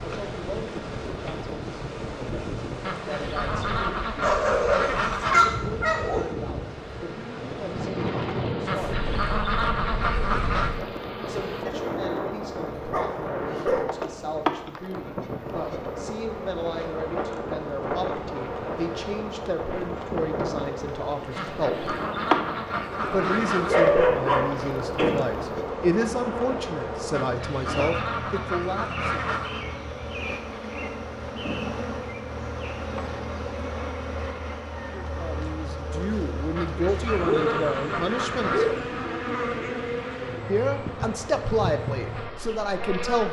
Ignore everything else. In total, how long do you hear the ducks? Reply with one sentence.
The ducks can be heard for 12 seconds in total.